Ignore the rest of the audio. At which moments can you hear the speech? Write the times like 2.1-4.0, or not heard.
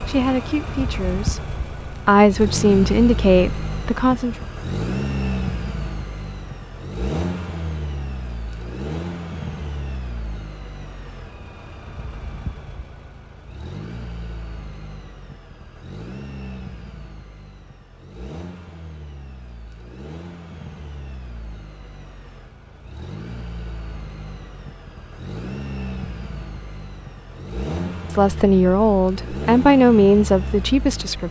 0.1-4.3, 28.1-31.2.